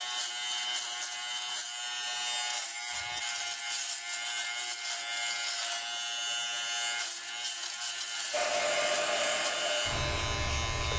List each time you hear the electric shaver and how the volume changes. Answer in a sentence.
The electric shaver can be heard from 0.0 to 10.9 s, at a steady volume.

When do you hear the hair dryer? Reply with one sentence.
You can hear the hair dryer from 8.3 to 10.9 s.